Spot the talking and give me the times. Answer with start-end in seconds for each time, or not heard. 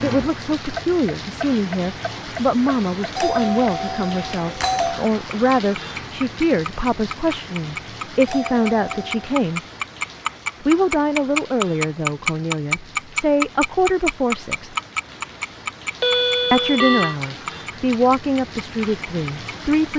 0.0-9.6, 10.6-14.8, 16.5-19.9.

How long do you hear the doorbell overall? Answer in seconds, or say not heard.
4 s.